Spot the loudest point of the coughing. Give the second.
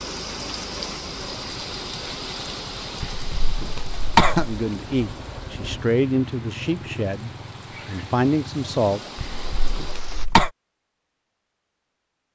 4 s.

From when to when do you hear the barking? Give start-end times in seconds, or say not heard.
not heard.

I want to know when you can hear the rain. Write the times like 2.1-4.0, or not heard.
0.0-10.3.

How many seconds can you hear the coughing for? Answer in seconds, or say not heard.
3 s.